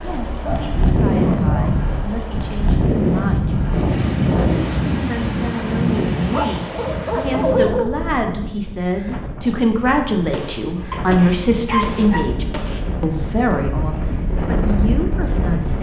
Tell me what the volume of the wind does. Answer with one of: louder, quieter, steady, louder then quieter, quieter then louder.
quieter then louder.